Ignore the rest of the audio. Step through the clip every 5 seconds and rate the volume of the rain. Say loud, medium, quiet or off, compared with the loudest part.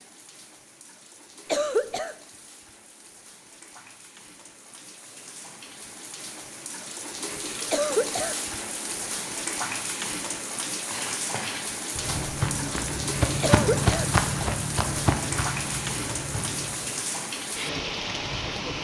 quiet, loud, loud, loud.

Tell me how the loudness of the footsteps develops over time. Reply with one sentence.
The volume of the footsteps goes up, then down.